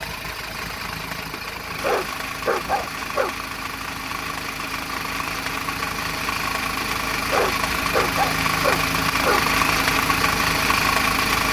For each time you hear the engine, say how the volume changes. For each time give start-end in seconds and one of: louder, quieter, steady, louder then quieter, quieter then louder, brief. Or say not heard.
0.0-11.4 louder.